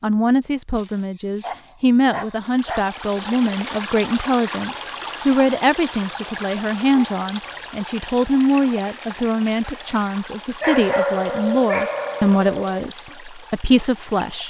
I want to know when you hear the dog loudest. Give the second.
11 s.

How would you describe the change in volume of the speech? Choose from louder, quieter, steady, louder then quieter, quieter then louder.
steady.